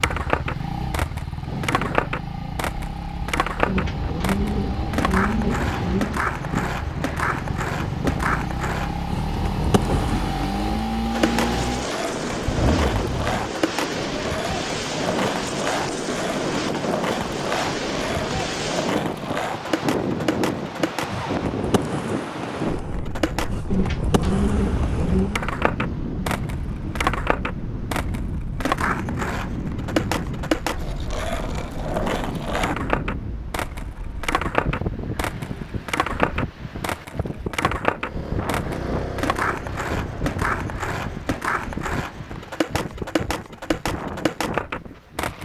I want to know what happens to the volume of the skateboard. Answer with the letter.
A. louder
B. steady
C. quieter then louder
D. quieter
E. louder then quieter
B.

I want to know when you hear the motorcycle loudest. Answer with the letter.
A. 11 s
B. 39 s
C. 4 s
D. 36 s
A.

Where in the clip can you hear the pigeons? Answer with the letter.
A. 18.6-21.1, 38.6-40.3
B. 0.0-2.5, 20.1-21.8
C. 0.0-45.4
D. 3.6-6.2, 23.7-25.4
D.